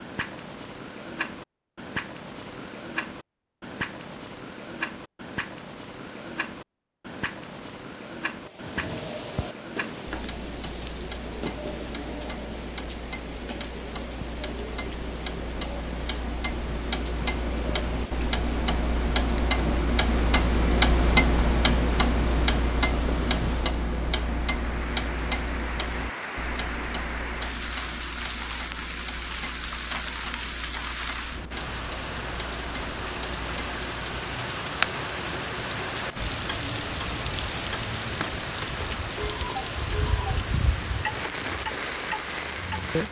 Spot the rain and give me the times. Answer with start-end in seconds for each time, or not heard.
8.4-43.0.